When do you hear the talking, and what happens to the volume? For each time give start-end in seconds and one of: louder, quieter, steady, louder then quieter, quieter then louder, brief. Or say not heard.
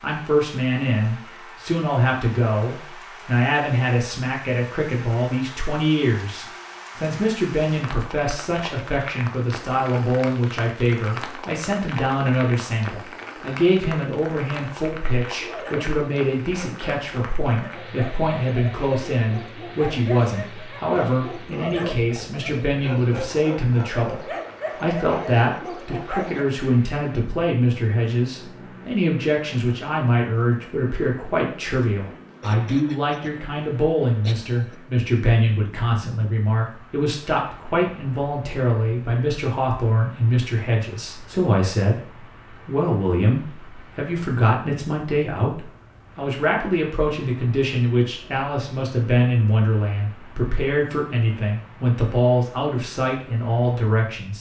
0.0-54.3 steady.